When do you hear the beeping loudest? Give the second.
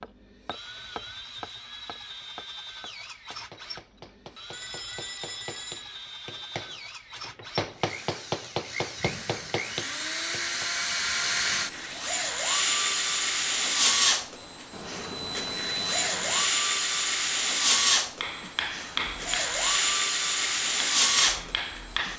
16 s.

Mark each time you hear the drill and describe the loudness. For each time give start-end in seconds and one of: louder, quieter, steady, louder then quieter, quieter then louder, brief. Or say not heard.
0.0-22.1 louder.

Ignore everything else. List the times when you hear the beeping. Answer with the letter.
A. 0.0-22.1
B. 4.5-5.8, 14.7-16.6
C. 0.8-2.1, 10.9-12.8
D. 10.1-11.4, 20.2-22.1
B.